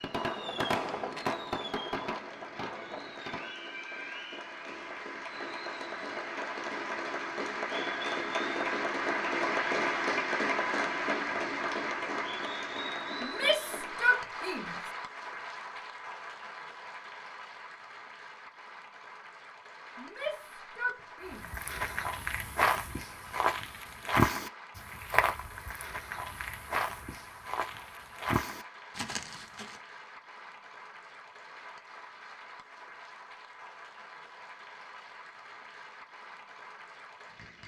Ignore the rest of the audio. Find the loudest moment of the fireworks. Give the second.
1 s.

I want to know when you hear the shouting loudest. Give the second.
14 s.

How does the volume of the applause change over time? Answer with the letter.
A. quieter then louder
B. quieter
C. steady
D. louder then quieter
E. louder
D.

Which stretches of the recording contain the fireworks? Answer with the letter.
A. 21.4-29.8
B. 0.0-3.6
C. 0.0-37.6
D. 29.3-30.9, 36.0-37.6
B.